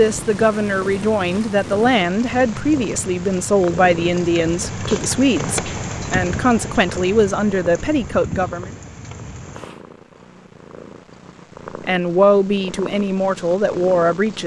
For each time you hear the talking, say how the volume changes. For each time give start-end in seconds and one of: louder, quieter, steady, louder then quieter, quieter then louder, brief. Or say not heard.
0.0-8.7 steady
11.8-14.4 brief.